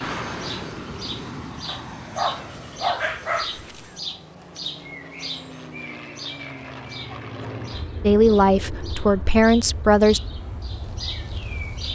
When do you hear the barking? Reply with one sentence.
The barking can be heard from 1.6 to 3.7 s.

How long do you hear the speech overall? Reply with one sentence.
You can hear the speech for 2 seconds altogether.